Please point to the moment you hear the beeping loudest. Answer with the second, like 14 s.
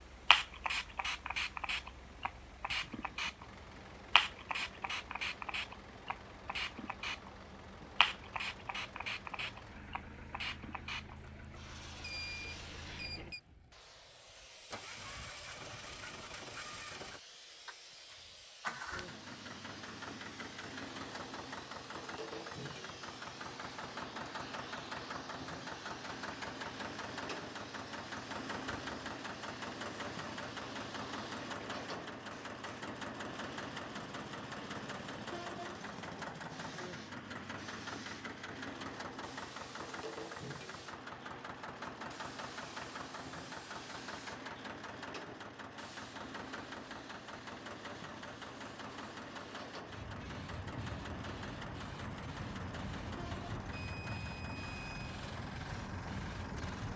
12 s.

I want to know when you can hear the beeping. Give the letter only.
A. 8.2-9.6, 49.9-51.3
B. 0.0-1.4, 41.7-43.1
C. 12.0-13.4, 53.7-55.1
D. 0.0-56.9
C.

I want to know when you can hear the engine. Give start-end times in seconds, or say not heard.
0.0-56.9.